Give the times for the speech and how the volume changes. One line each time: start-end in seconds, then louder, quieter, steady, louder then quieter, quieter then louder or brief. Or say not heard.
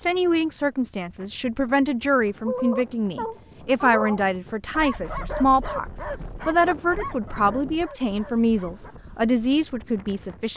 0.0-10.5 steady.